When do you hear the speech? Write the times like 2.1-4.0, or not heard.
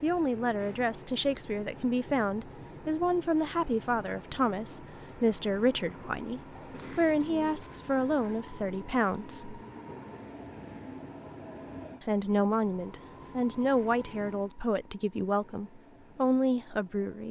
0.0-9.6, 12.0-17.2.